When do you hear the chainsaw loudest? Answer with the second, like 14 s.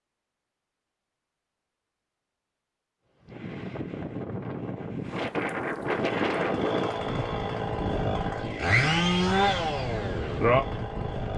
9 s.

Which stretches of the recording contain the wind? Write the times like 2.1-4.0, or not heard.
3.2-11.3.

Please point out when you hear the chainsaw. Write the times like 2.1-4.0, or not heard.
5.8-11.3.